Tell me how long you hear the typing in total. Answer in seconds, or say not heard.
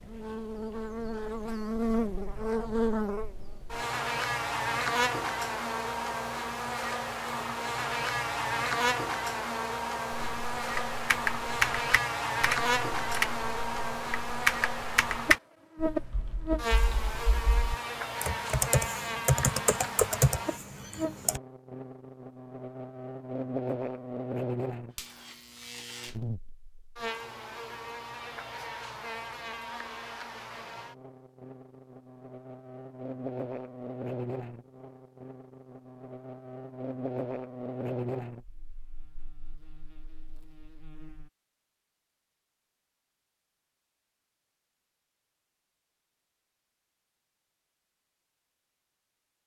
11 s.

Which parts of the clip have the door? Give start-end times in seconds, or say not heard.
not heard.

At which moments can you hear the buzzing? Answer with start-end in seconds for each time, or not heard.
0.0-41.3.